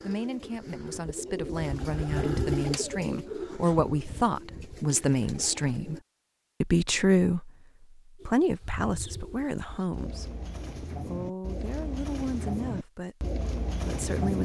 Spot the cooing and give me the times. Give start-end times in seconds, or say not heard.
0.0-6.0, 8.2-14.4.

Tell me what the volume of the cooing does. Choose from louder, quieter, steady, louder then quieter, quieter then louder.
quieter then louder.